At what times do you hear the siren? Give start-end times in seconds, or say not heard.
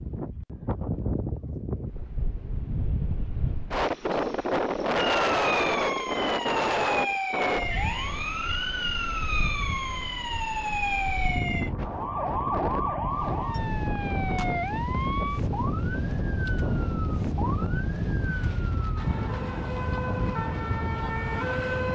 5.0-21.8.